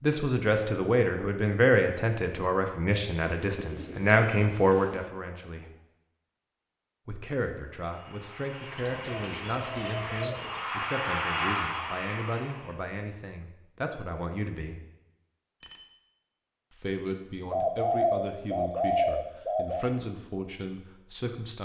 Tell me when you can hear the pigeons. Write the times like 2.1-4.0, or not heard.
3.2-5.1, 8.8-10.7, 17.5-19.9.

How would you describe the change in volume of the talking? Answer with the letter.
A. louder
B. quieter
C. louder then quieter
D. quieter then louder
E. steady
B.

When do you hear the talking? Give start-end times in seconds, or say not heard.
0.0-5.7, 7.0-14.8, 16.8-21.5.